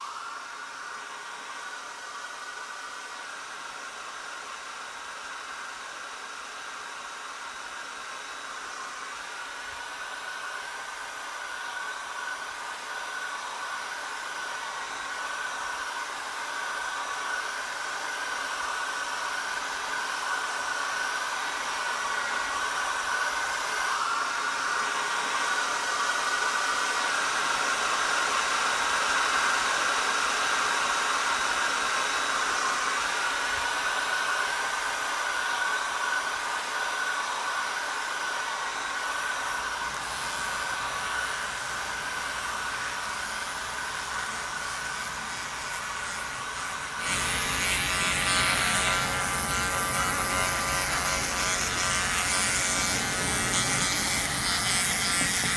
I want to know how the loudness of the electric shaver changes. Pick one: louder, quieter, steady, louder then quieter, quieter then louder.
louder.